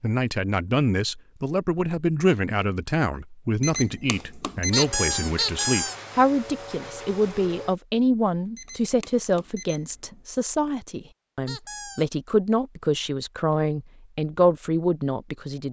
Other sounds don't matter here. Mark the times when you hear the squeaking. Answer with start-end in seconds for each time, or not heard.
4.7-6.0, 11.4-12.2.